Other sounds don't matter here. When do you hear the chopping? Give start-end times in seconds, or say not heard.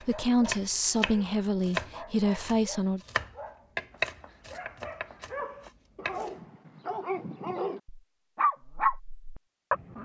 0.0-6.3.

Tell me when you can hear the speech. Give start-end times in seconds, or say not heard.
0.1-3.0.